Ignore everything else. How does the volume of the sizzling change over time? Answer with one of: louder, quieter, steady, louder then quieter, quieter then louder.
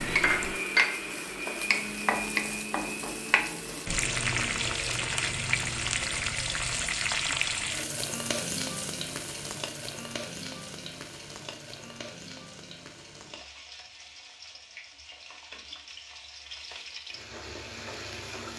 quieter.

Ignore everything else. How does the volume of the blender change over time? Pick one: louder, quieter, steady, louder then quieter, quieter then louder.
quieter.